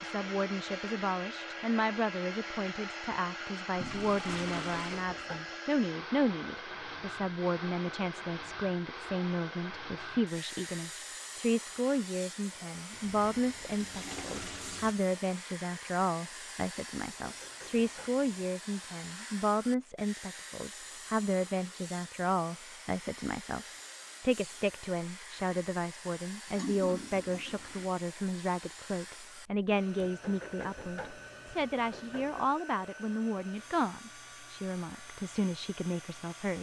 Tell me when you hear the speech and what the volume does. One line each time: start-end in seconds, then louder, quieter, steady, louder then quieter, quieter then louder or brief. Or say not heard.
0.0-36.5 steady.